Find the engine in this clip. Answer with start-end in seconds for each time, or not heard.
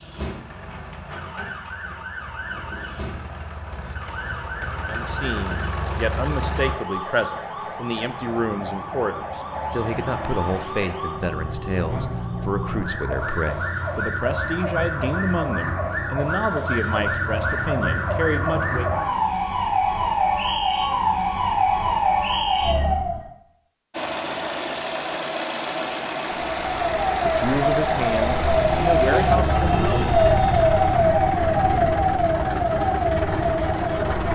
0.0-6.8, 23.9-34.3.